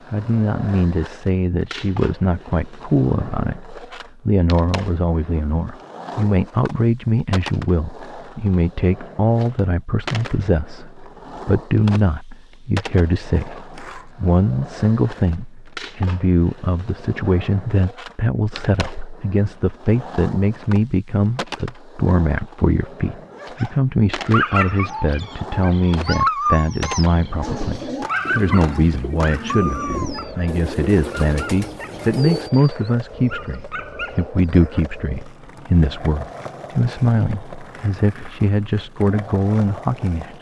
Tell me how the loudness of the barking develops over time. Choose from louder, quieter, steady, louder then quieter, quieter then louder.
quieter.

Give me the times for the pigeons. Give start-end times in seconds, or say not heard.
27.4-32.5.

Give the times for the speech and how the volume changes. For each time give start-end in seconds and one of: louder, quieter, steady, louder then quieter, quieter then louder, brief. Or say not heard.
0.1-40.3 steady.